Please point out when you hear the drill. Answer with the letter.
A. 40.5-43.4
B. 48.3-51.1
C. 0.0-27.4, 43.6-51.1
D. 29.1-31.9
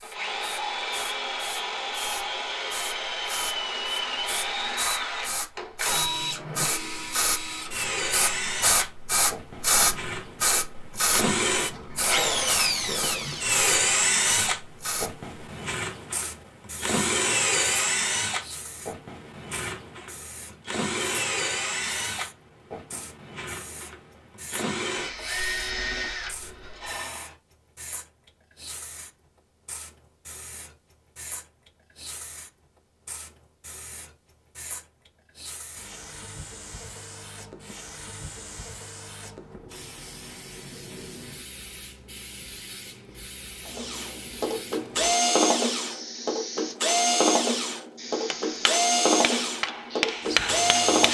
C.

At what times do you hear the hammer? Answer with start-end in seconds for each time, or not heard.
48.3-51.1.